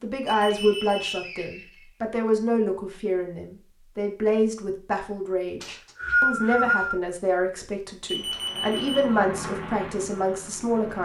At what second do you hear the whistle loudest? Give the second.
6 s.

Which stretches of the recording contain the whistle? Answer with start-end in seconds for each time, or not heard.
0.3-1.9, 5.6-7.0.